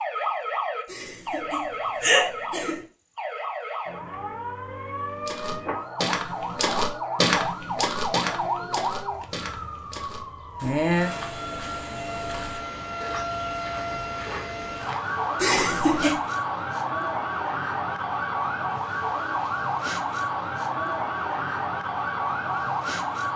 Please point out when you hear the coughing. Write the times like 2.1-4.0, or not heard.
0.8-2.8, 15.3-16.2.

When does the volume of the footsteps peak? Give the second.
7 s.